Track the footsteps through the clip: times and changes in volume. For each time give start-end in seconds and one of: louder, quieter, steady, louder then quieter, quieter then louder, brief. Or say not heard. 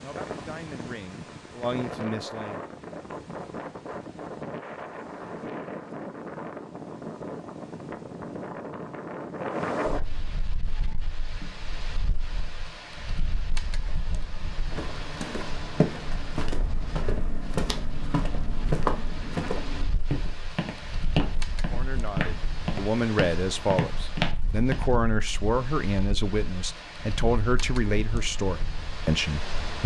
14.7-24.9 steady.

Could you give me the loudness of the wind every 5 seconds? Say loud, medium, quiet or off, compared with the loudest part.
loud, loud, medium, medium, medium, medium.